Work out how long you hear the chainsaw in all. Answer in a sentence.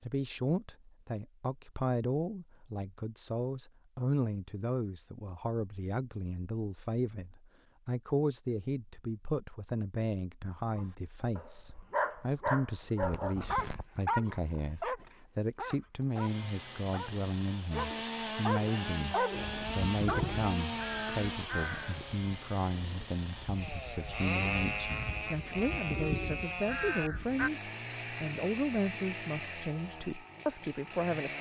The chainsaw can be heard for 15 seconds in total.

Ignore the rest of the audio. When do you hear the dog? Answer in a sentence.
The dog can be heard from 10.8 to 20.4 s.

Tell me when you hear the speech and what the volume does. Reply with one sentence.
You can hear the speech from 0.0 to 31.3 s, at a steady volume.